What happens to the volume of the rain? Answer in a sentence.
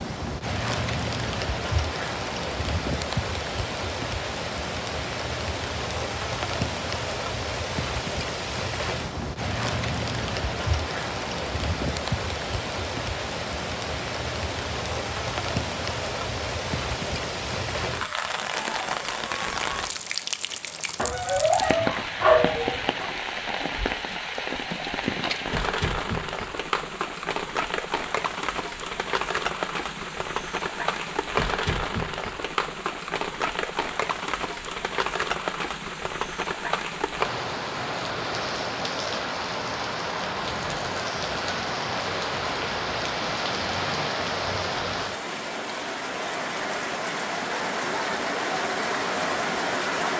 The volume of the rain stays about the same.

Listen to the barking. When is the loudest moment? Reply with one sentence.
The loudest moment of the barking is at 22 seconds.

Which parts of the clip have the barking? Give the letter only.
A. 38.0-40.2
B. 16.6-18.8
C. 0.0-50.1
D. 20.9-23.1
D.